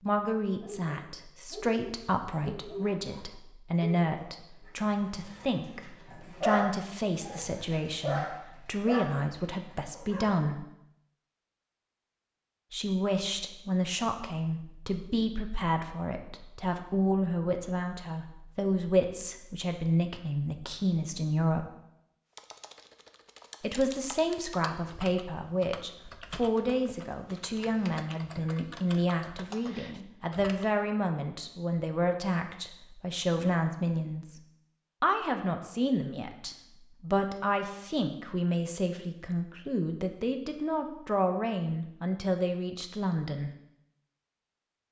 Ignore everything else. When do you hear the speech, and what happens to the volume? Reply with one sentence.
You can hear the speech from 0.0 to 10.7 s, at a steady volume; from 12.7 to 21.7 s, at a steady volume; from 23.6 to 34.4 s, at a steady volume; and from 35.0 to 43.5 s, at a steady volume.